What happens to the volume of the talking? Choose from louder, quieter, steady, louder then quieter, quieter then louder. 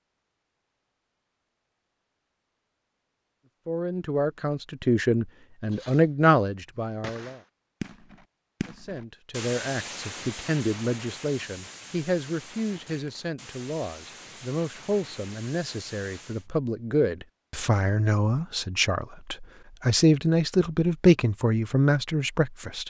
quieter then louder.